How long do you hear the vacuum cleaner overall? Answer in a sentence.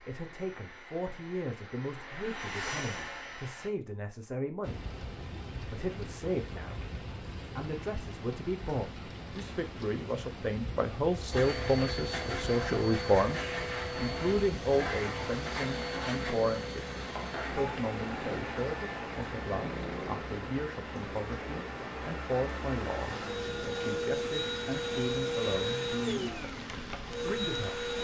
You can hear the vacuum cleaner for 20 seconds altogether.